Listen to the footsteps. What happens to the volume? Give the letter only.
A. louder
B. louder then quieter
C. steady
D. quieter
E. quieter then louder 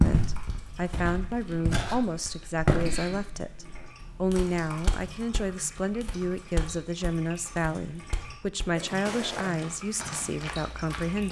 D.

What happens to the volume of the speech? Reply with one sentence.
The loudness of the speech stays about the same.